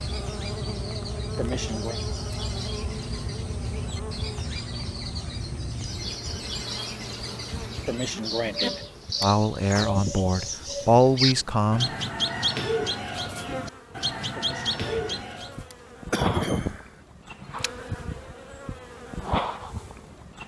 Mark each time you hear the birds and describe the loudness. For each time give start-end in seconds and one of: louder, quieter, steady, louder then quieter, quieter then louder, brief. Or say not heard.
0.0-15.7 louder.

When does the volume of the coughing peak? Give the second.
16 s.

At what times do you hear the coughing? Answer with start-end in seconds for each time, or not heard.
1.4-2.0, 7.8-9.3, 14.3-16.9.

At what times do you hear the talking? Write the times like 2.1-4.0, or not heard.
9.2-11.9.